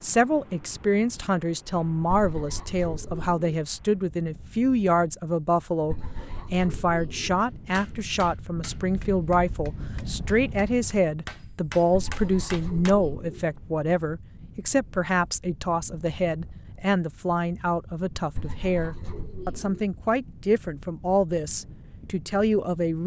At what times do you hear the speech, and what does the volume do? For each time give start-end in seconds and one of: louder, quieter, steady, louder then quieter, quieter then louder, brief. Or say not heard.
0.0-23.0 steady.